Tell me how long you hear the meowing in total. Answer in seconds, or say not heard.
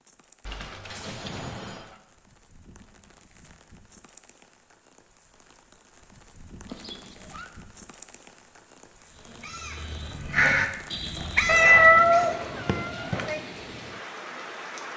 4 s.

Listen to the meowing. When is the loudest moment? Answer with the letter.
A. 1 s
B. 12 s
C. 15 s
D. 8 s
B.